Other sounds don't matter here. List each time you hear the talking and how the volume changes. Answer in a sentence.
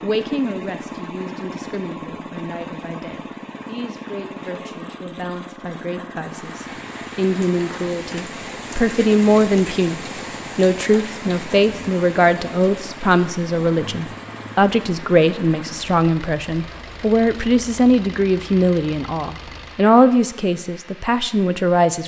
You can hear the talking from 0.0 to 22.0 s, getting louder.